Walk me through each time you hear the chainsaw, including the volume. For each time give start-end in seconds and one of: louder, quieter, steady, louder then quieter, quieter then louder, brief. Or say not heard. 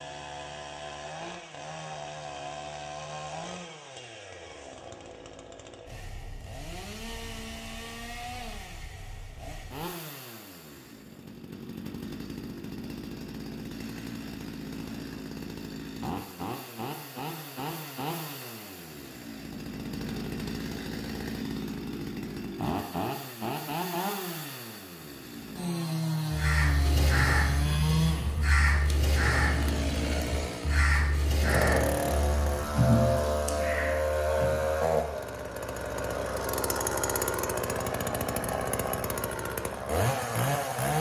0.0-40.9 louder.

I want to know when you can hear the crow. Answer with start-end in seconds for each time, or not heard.
26.3-34.6.